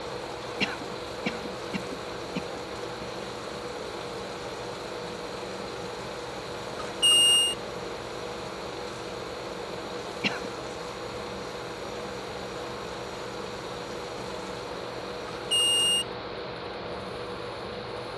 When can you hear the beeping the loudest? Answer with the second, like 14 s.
7 s.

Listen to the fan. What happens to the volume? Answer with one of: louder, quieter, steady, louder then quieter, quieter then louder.
steady.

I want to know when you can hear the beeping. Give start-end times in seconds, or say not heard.
6.8-7.5, 15.5-16.1.